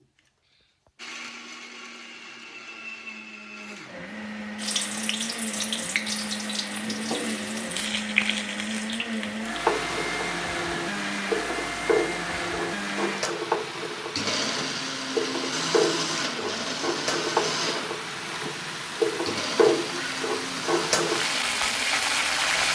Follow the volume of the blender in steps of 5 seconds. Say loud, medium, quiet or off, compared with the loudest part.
medium, loud, loud, loud, medium.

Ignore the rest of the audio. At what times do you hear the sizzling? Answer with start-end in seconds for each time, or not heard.
4.5-22.7.